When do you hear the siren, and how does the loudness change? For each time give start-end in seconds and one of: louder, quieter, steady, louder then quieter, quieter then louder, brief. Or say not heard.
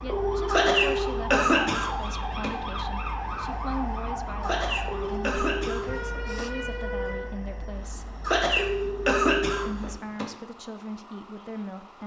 0.0-12.0 quieter.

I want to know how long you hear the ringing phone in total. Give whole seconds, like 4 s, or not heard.
4 s.